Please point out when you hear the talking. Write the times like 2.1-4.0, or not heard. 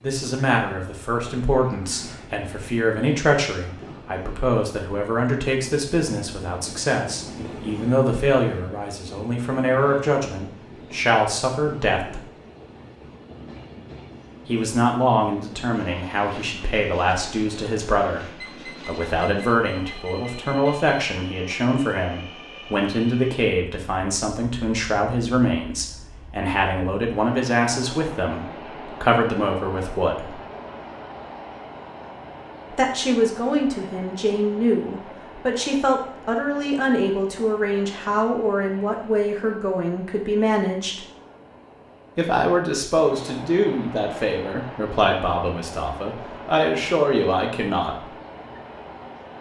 0.0-12.2, 14.4-30.4, 32.7-41.0, 42.1-48.1.